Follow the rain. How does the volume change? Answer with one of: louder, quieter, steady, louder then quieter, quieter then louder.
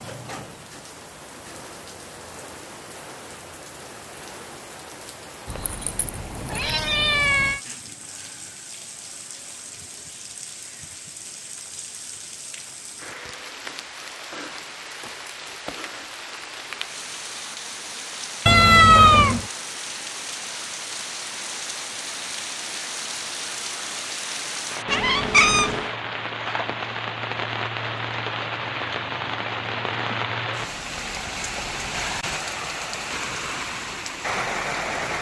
louder.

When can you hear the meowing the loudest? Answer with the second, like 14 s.
19 s.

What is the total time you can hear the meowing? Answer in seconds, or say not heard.
4 s.